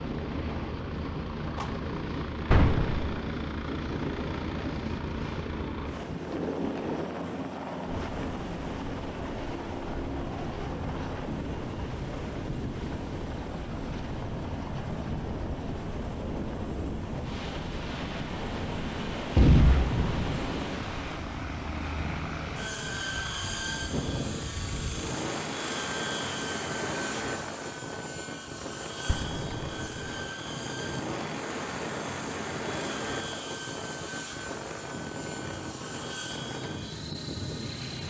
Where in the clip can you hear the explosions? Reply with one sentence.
The explosions can be heard from 2.5 to 3.0 s, from 19.4 to 20.6 s and from 29.1 to 30.1 s.